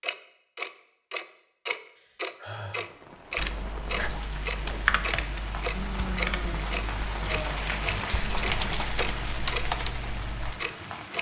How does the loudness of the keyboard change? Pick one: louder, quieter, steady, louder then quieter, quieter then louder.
quieter then louder.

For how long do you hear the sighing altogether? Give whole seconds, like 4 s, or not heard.
3 s.